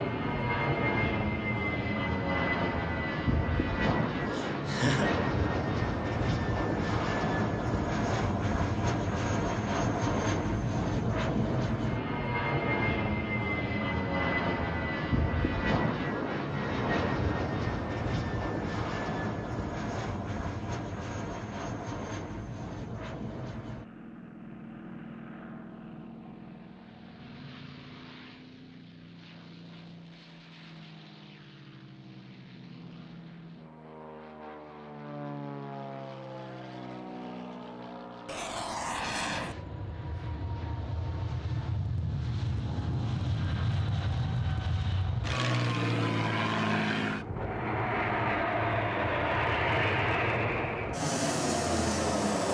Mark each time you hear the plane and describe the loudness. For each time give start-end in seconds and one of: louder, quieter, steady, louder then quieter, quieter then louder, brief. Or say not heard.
0.0-52.4 quieter then louder.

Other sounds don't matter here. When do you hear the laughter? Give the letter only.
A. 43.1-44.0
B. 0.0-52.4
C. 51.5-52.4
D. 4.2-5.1
D.